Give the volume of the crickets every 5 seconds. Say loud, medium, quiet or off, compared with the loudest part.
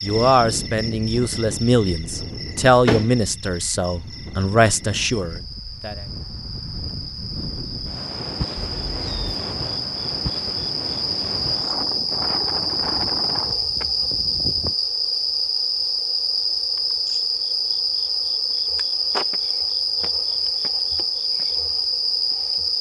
quiet, medium, loud, loud, loud.